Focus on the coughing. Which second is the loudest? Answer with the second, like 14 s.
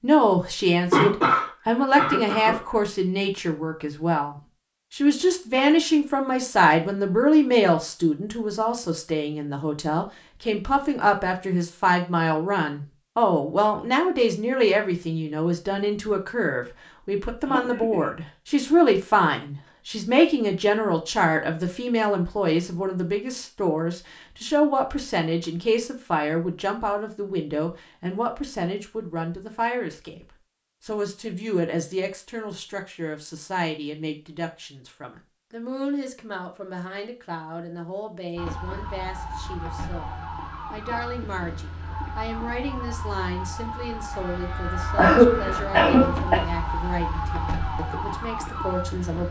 45 s.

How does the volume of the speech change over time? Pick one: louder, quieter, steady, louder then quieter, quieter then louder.
quieter.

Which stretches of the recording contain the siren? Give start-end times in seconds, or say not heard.
38.4-49.2.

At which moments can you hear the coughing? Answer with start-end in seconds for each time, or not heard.
0.9-2.6, 17.4-18.1, 45.0-46.4.